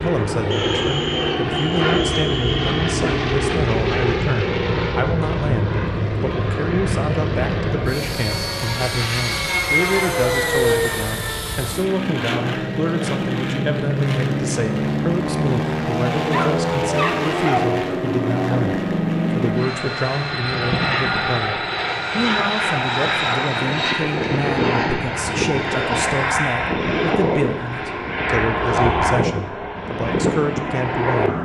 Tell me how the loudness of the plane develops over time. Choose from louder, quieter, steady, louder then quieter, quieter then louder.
steady.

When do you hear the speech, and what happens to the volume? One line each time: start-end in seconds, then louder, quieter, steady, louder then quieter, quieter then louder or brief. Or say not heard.
0.0-31.4 steady.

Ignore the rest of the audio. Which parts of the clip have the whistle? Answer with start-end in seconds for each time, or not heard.
0.5-2.9.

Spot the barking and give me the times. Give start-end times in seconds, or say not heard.
16.2-17.7.